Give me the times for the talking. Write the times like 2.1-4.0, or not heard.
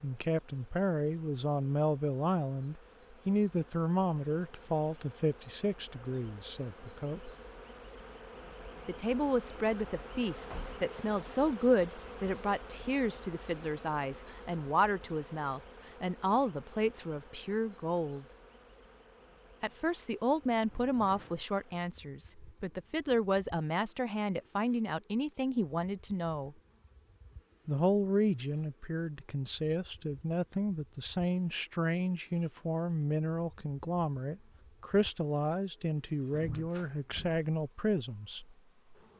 0.0-7.3, 8.8-18.2, 19.6-26.6, 27.6-38.5.